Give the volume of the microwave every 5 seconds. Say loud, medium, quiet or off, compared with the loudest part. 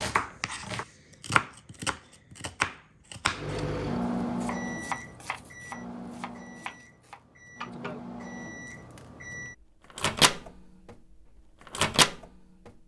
medium, quiet, loud.